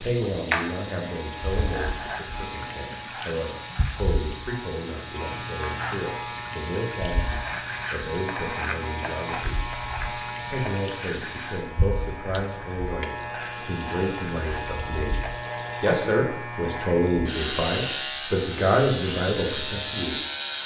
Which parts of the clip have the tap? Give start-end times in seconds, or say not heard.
0.0-15.9.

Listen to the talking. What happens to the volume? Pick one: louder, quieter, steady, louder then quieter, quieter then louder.
louder.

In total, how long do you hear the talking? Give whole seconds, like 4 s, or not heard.
19 s.